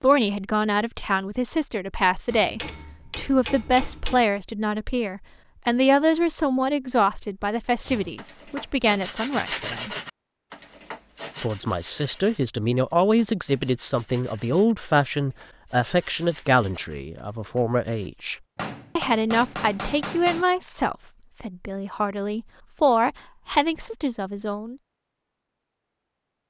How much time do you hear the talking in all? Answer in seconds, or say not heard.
23 s.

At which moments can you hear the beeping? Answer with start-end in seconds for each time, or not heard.
not heard.